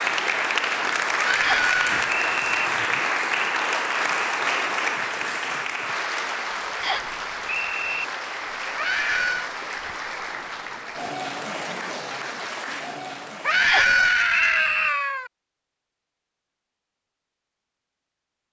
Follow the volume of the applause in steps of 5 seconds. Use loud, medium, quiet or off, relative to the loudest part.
loud, medium, medium, off.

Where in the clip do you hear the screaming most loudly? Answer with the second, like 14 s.
14 s.